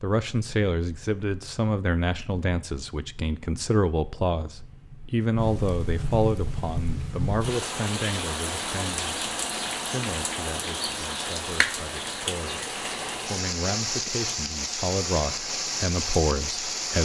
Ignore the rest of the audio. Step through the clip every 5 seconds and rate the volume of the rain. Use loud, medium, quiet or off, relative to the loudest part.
quiet, loud, loud, loud.